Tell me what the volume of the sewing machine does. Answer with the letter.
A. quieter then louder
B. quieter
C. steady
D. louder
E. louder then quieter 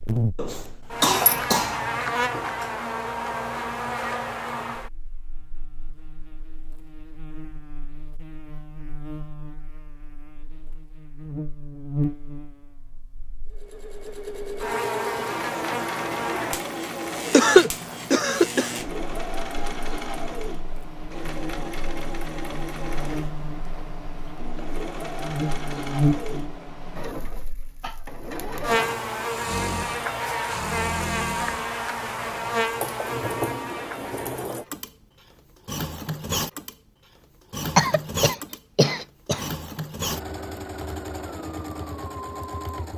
C.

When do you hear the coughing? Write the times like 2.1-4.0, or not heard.
0.3-1.8, 17.3-18.7, 37.8-39.5.